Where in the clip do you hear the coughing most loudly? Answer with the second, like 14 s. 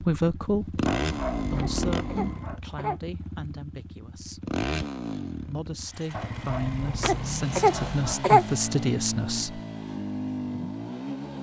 8 s.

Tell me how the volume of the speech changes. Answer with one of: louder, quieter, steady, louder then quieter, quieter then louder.
quieter then louder.